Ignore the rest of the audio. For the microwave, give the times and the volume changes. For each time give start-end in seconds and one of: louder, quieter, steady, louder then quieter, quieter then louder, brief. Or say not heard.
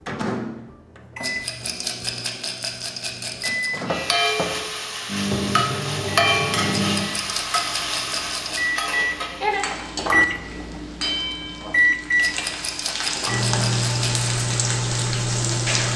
0.0-15.9 louder.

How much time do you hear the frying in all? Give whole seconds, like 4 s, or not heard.
12 s.